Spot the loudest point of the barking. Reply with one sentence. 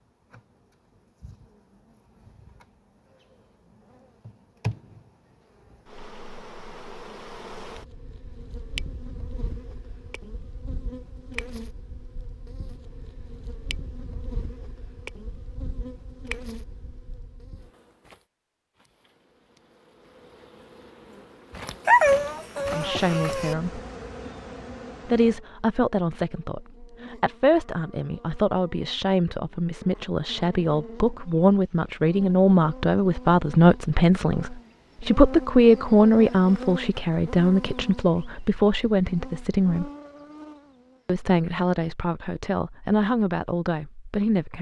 The volume of the barking peaks at 22 seconds.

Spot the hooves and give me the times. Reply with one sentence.
The hooves can't be heard in this clip.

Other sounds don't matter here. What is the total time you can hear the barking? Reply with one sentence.
The barking can be heard for 2 seconds in total.